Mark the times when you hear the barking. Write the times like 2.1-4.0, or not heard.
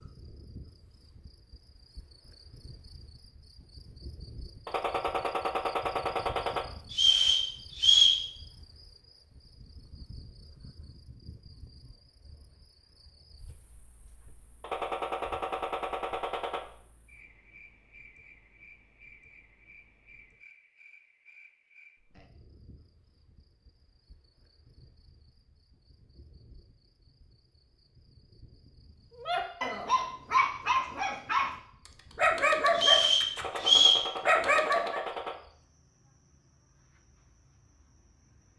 29.2-31.6, 32.1-35.0.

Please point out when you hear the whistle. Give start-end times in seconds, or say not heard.
6.9-8.2, 32.8-34.0.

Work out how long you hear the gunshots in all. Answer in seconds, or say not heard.
6 s.